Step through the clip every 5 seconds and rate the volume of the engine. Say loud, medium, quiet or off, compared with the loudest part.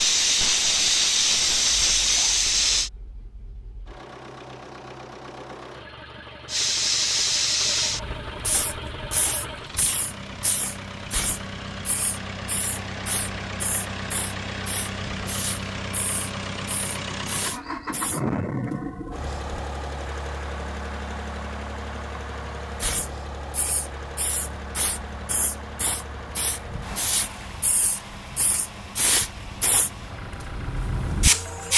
quiet, medium, loud, loud, medium, medium, medium.